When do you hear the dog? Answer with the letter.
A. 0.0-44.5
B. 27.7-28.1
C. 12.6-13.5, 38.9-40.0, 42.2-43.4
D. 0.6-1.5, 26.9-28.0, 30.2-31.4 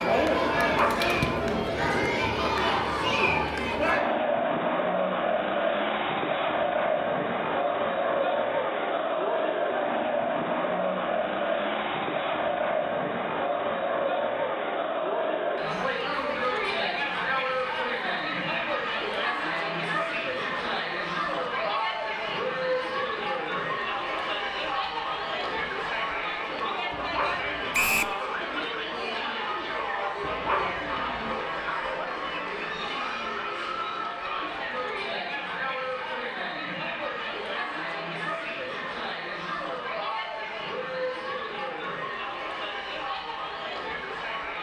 D.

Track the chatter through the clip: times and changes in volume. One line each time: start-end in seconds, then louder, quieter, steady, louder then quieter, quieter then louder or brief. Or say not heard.
0.0-44.5 quieter.